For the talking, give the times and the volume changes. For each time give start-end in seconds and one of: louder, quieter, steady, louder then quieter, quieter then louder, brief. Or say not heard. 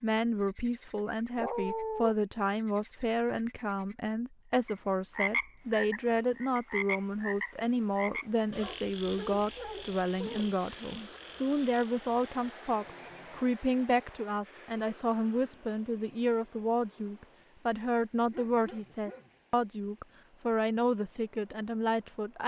0.0-22.4 steady.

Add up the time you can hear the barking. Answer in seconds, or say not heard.
4 s.